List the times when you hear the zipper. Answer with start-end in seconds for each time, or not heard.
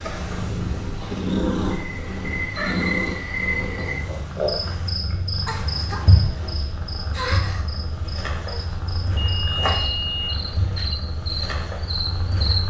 not heard.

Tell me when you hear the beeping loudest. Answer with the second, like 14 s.
10 s.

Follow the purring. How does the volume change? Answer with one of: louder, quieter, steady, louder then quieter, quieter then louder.
quieter.